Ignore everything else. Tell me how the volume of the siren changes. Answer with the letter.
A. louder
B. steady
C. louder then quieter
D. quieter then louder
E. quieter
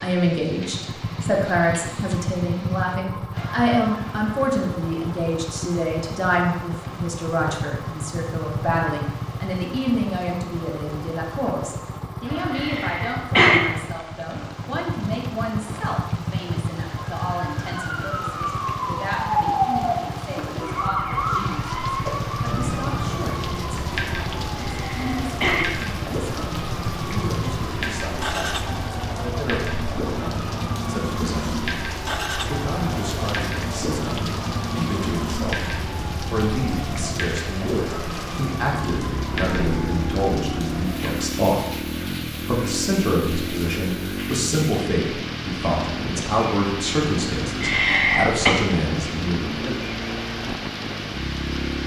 E.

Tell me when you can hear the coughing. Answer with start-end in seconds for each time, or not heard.
12.5-13.6, 24.7-25.6, 47.6-48.5.